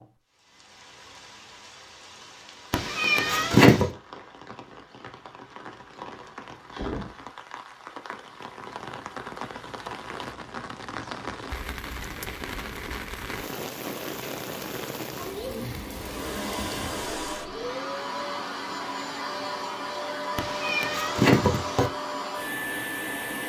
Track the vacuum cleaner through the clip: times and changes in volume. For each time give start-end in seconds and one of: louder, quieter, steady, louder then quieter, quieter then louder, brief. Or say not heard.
15.9-23.4 steady.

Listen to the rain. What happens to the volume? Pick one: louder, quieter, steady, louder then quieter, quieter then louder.
louder.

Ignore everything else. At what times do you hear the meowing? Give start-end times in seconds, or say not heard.
2.7-3.9, 20.4-21.9.